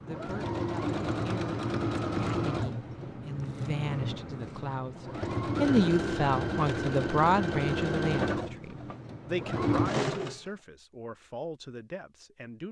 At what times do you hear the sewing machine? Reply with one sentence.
You can hear the sewing machine from 0.0 to 10.4 s.